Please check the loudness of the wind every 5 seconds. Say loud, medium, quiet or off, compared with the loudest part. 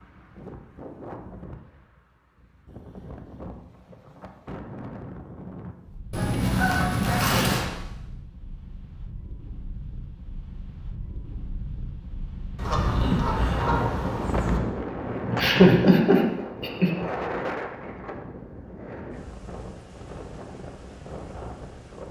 medium, medium, loud, loud, medium.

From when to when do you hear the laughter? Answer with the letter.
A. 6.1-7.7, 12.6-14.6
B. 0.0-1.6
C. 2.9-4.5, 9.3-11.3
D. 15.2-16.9
D.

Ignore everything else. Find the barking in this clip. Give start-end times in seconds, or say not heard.
not heard.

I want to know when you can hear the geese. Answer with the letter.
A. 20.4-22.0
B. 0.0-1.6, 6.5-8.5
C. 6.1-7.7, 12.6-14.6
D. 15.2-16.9
C.